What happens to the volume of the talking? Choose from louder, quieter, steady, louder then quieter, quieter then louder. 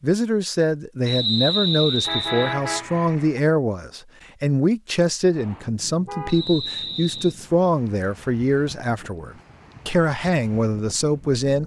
steady.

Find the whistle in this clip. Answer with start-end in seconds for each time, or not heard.
1.1-2.5, 6.2-7.3.